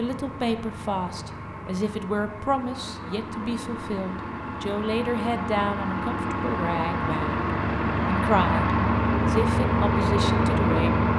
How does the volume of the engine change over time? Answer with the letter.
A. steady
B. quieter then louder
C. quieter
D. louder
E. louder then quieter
D.